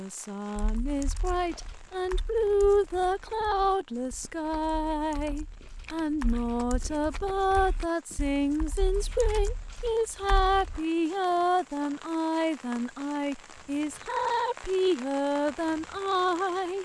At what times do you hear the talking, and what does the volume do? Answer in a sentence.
The talking can be heard from 0.0 to 16.7 s, at a steady volume.